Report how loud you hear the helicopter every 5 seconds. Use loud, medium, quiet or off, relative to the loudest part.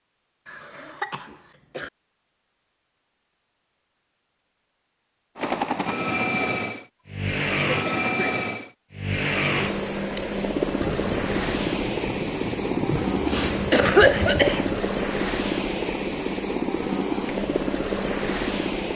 off, loud, loud, loud.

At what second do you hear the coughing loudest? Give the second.
14 s.